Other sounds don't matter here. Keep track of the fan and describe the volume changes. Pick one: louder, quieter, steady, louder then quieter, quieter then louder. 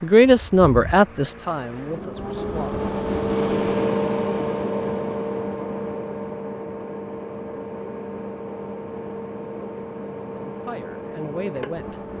louder then quieter.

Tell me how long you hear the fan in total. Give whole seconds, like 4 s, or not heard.
12 s.